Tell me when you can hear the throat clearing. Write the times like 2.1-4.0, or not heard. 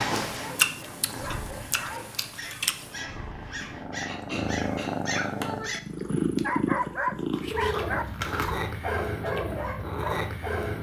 3.6-5.5.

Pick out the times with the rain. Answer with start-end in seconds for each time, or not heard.
not heard.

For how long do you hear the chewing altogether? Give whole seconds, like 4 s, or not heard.
4 s.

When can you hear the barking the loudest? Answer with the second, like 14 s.
7 s.